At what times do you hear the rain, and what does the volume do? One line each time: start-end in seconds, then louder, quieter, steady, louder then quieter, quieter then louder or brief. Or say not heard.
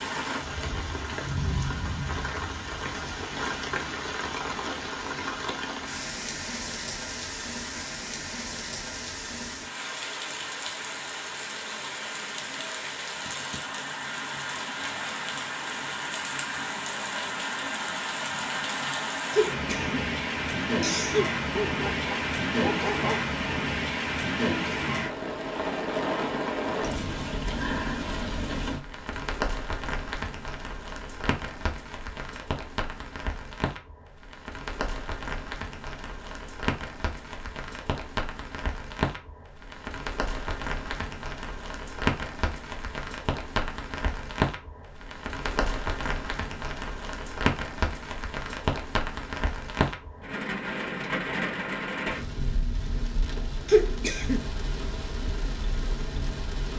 0.0-56.7 steady.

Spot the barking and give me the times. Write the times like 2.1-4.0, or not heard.
21.6-23.2.